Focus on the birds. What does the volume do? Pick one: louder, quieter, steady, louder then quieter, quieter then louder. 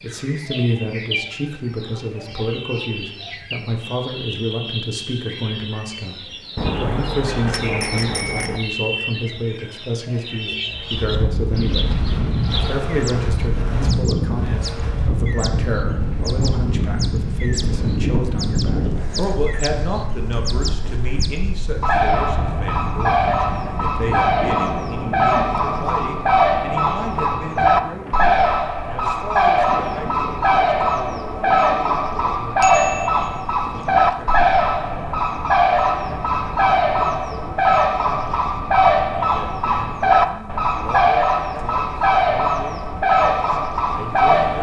louder.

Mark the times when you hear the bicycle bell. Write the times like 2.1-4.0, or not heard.
6.5-8.6, 32.6-34.1.